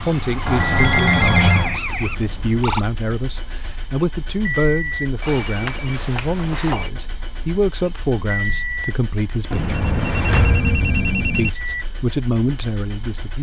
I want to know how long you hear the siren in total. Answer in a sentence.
The siren can be heard for 3 seconds in total.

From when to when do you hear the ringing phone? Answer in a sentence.
The ringing phone can be heard from 0.5 to 1.8 s, from 5.2 to 6.9 s and from 9.5 to 11.5 s.